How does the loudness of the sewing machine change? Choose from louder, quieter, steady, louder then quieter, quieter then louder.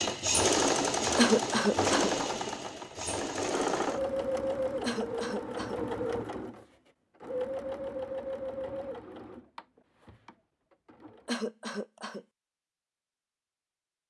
quieter.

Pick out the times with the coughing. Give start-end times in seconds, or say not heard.
1.1-2.1, 4.8-5.8, 11.2-12.2.